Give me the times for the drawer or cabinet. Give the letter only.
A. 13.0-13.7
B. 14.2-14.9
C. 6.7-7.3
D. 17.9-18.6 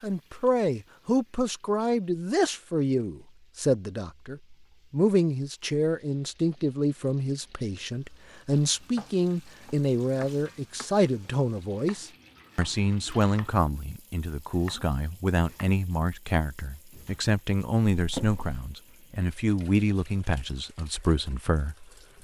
D.